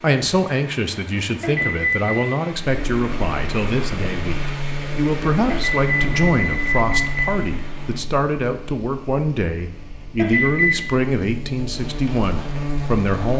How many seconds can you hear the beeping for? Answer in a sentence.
You can hear the beeping for 3 seconds altogether.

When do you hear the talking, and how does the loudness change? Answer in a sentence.
The talking can be heard from 0.0 to 13.3 s, at a steady volume.